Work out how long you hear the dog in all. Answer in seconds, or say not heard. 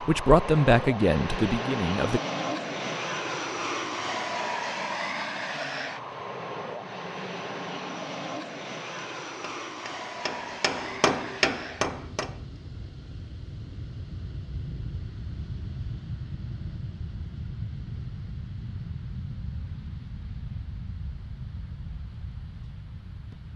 not heard.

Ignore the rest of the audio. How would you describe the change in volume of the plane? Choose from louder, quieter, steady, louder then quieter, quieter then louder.
quieter.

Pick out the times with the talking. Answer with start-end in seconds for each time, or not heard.
0.0-2.2.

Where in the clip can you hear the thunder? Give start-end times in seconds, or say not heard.
not heard.